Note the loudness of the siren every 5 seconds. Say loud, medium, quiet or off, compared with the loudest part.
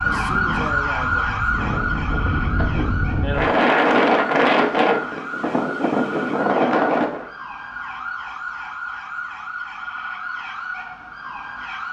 loud, medium, medium.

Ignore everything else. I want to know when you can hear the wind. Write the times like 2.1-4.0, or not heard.
0.0-7.2.